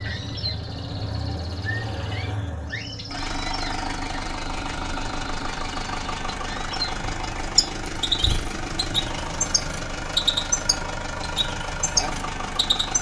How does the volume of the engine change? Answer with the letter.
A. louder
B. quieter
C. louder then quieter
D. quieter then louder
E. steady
E.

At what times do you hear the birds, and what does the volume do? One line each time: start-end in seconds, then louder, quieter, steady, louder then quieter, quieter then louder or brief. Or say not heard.
0.0-12.9 louder.